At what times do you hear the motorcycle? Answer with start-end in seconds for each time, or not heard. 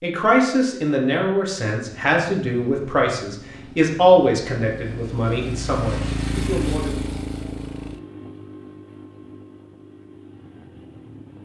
1.9-11.4.